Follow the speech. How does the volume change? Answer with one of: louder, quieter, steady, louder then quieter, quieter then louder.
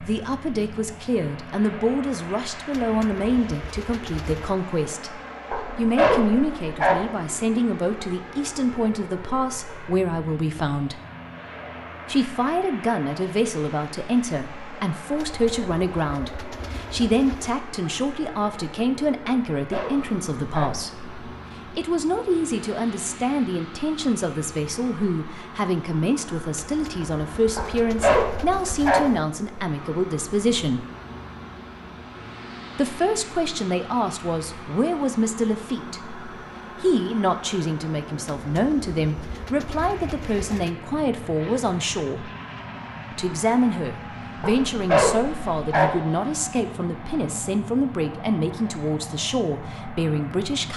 steady.